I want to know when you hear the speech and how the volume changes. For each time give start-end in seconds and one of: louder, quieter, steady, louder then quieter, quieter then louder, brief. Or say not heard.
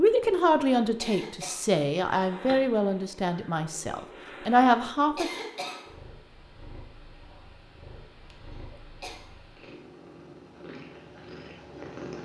0.0-5.3 quieter then louder.